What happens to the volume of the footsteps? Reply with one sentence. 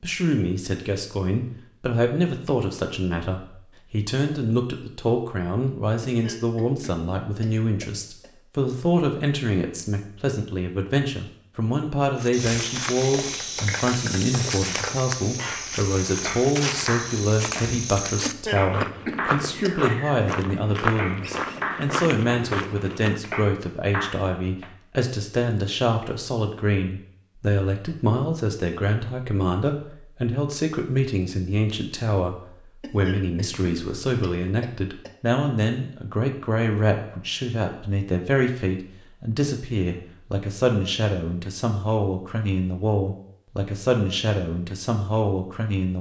The volume of the footsteps stays about the same.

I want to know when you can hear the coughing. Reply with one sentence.
You can hear the coughing from 6.0 to 8.3 s, from 18.2 to 19.8 s and from 32.8 to 35.1 s.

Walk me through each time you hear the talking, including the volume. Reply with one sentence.
The talking can be heard from 0.0 to 45.9 s, at a steady volume.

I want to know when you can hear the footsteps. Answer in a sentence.
The footsteps can be heard from 12.2 to 23.2 s.